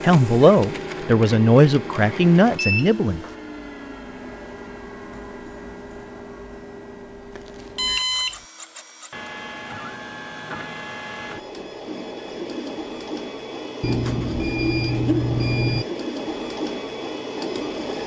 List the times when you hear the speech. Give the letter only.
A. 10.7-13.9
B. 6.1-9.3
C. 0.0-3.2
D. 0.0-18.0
C.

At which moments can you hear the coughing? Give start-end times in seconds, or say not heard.
not heard.